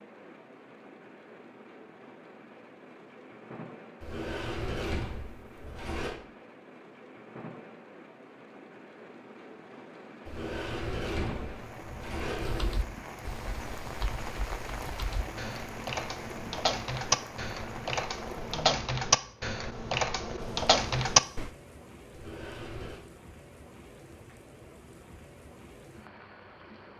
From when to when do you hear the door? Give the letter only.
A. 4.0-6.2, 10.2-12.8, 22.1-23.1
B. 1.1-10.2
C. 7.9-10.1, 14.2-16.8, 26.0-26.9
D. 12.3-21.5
A.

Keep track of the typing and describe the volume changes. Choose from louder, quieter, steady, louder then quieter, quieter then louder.
louder.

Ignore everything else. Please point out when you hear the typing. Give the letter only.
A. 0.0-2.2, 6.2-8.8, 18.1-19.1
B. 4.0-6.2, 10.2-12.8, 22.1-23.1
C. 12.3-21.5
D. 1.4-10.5
C.